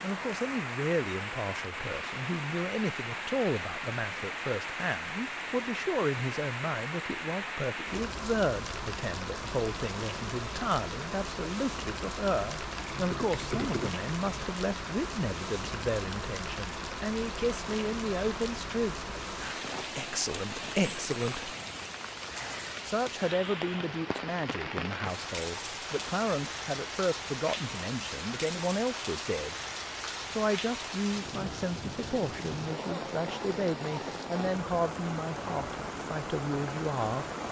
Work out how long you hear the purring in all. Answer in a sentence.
You can't hear the purring here.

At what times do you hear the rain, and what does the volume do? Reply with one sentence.
The rain can be heard from 0.0 to 37.4 s, at a steady volume.